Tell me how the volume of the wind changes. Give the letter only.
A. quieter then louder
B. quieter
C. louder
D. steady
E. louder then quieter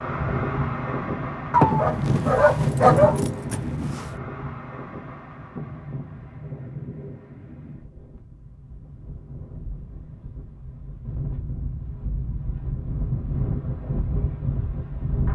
A.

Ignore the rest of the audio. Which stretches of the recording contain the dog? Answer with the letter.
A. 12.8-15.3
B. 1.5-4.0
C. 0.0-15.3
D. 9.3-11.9
B.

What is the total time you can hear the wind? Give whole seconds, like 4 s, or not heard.
15 s.